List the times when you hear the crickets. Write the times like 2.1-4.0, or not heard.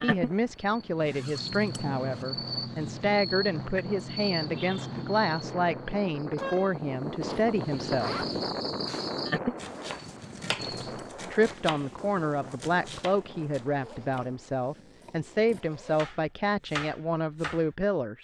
0.0-11.1.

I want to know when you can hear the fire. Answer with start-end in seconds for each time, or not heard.
not heard.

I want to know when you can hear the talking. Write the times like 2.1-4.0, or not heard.
0.0-8.2, 10.7-18.1.